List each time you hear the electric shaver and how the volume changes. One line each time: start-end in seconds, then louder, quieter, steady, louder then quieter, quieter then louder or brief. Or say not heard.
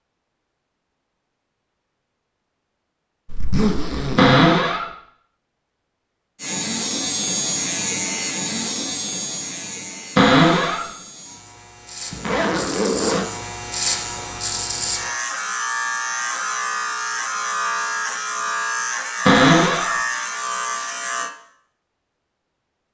6.4-21.3 quieter then louder.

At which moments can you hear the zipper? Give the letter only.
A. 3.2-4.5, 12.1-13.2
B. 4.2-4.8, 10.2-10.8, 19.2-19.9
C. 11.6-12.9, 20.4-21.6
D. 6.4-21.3
A.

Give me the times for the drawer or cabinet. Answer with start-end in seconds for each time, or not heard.
4.2-4.8, 10.2-10.8, 19.2-19.9.